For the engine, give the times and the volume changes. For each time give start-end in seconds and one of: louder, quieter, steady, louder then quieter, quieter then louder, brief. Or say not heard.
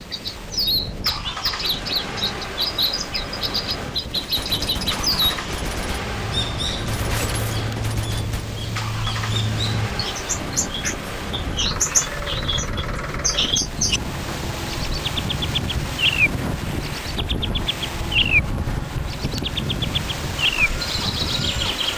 0.0-21.9 steady.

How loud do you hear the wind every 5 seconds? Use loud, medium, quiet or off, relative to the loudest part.
medium, medium, loud, loud, loud.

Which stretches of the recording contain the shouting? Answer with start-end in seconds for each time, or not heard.
not heard.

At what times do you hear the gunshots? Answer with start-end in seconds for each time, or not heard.
3.9-8.4.